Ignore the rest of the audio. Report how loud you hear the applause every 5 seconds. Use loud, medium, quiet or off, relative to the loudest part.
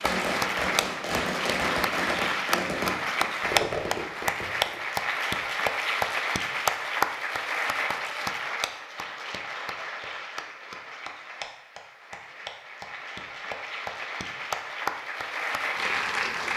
loud, loud, medium, loud.